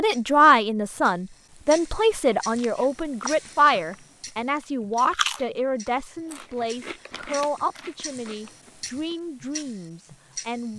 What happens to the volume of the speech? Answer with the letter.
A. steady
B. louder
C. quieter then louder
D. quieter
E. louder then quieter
D.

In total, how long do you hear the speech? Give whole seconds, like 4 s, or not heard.
11 s.